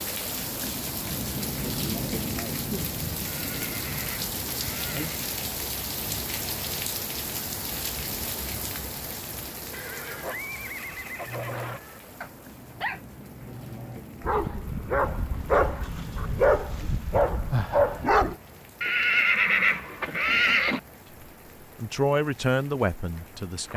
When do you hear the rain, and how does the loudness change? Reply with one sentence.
The rain can be heard from 0.0 to 23.7 s, getting quieter.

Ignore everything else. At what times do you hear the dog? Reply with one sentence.
You can hear the dog from 11.2 to 18.4 s.